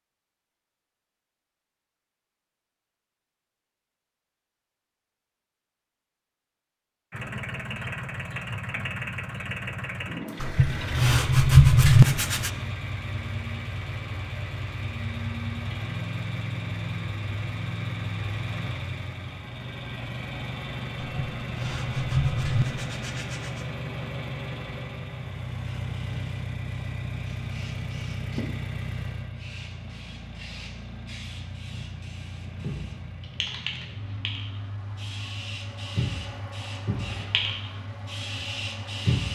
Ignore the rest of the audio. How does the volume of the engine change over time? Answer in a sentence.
The volume of the engine goes down.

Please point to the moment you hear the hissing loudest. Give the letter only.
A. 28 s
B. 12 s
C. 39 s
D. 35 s
C.